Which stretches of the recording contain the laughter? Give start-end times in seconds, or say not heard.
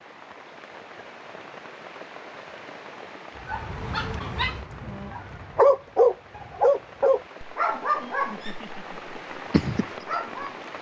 8.2-9.2.